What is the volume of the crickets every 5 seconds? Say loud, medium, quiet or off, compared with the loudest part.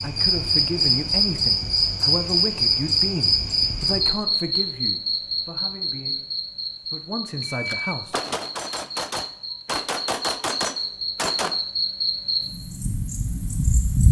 loud, medium, medium.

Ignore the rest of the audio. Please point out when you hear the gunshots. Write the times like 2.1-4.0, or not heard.
7.4-11.6.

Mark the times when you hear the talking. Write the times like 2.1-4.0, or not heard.
0.0-6.2, 6.8-8.2.